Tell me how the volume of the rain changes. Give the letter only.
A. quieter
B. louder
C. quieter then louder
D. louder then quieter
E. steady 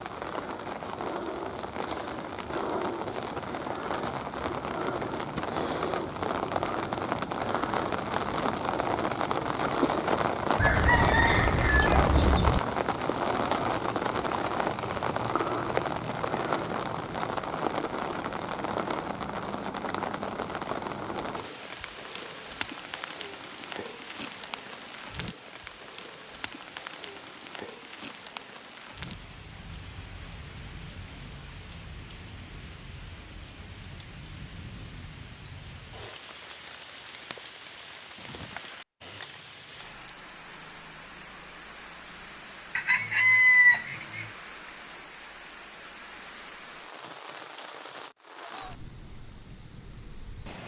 A.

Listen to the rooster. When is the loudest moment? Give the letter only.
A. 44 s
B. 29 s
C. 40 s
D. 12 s
A.